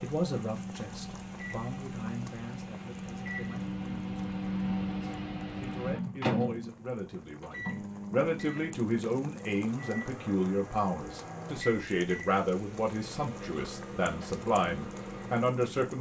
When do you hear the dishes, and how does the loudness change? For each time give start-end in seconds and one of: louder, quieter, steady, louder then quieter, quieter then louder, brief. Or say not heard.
not heard.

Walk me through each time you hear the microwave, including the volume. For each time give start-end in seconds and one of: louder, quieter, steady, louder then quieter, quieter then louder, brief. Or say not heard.
0.0-15.9 louder then quieter.